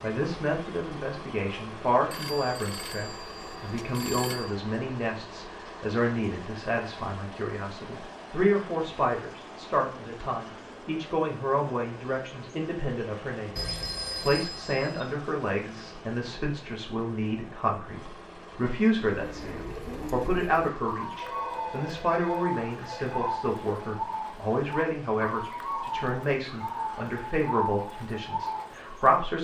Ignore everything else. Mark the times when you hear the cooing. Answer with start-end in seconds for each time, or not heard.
19.1-29.2.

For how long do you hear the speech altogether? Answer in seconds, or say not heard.
29 s.